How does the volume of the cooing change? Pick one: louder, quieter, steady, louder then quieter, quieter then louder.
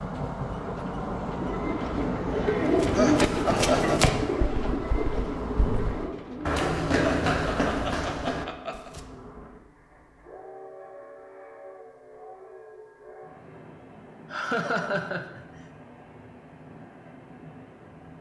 louder then quieter.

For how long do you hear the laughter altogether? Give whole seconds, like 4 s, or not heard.
4 s.